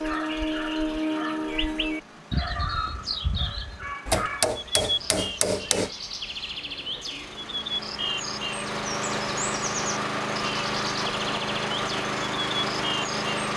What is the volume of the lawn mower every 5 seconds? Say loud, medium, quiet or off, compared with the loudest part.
quiet, medium, loud.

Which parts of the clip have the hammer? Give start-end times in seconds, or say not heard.
4.1-5.9.